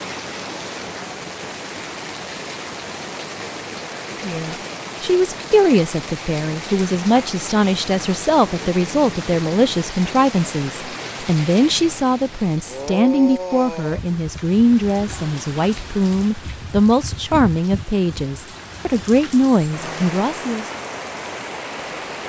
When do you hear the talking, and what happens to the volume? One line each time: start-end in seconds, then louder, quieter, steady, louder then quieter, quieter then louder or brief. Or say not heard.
4.2-20.7 steady.